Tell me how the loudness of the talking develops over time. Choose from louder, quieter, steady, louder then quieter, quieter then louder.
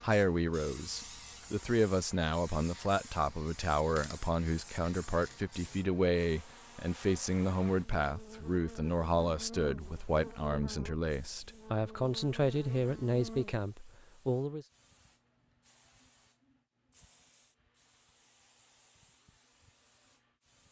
steady.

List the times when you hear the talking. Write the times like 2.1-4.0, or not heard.
0.0-14.7.